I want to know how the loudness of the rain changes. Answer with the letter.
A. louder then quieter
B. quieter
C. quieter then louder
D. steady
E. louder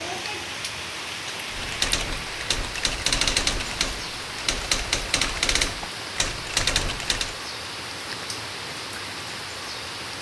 D.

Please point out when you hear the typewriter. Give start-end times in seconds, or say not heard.
1.5-7.3.